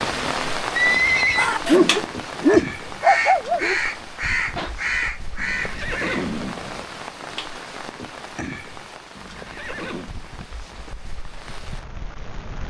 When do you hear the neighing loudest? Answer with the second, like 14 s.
1 s.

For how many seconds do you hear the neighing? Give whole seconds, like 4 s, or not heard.
3 s.